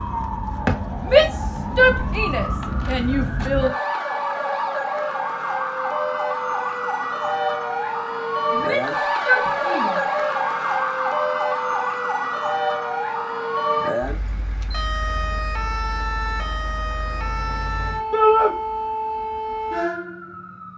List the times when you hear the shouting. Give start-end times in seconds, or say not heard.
1.0-3.7, 8.5-10.2, 18.1-18.6.